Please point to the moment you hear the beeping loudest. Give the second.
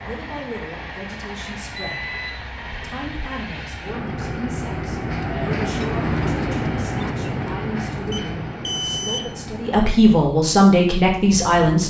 9 s.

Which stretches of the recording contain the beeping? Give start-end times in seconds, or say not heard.
1.8-3.6, 8.1-9.2.